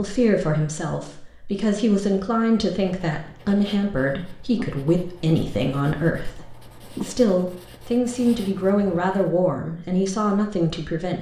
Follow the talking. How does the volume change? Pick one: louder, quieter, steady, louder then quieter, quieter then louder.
steady.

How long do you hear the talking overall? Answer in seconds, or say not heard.
11 s.